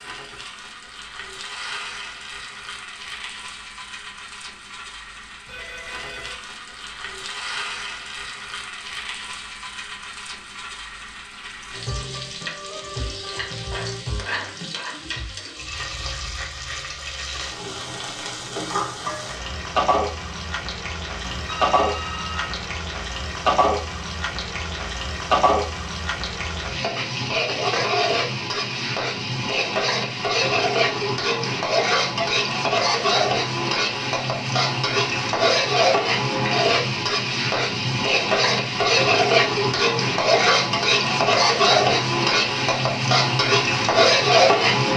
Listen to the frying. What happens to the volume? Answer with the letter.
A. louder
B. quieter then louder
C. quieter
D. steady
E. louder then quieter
A.